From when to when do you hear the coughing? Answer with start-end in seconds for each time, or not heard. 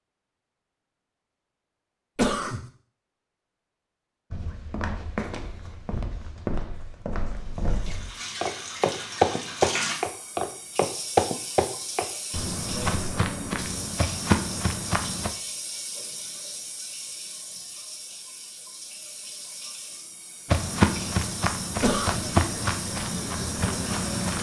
2.1-2.6, 21.8-22.2.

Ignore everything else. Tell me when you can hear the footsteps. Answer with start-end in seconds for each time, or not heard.
4.3-15.3, 20.4-24.3.